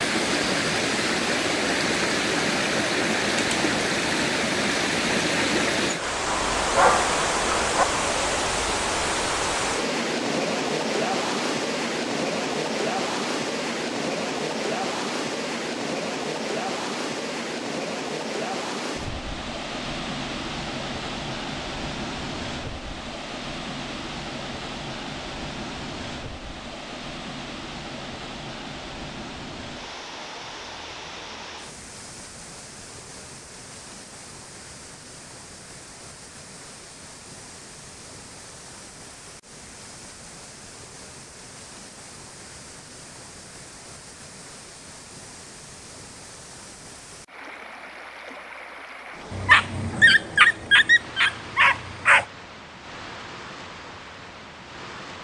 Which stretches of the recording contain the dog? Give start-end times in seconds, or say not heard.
6.2-7.8, 49.3-52.2.